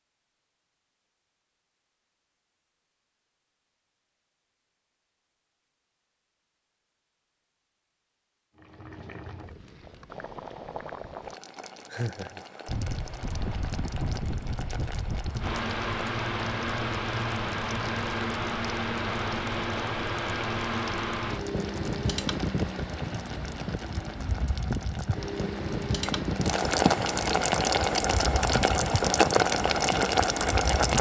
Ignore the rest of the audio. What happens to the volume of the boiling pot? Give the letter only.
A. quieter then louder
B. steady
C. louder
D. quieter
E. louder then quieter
C.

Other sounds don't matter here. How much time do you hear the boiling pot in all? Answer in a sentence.
The boiling pot can be heard for 22 seconds in total.